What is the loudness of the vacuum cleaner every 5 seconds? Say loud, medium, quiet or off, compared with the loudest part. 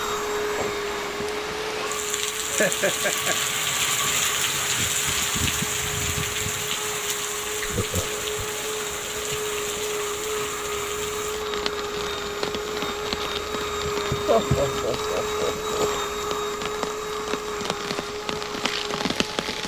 loud, medium, loud, loud.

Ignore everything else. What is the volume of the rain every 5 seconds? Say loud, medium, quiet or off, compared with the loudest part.
loud, loud, medium, medium.